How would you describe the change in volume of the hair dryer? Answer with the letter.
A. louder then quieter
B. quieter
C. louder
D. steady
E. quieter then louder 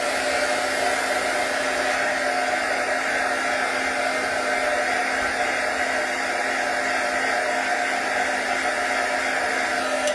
D.